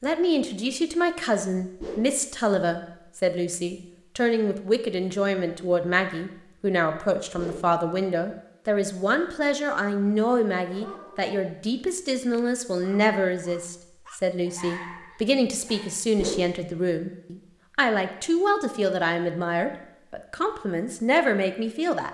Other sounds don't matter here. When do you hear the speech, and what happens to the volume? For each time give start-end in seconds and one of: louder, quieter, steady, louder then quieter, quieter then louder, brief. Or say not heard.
0.0-22.0 steady.